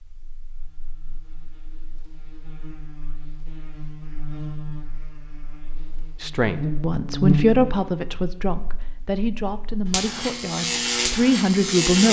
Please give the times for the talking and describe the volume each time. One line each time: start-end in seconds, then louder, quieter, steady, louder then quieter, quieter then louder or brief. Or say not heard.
6.2-12.0 quieter then louder.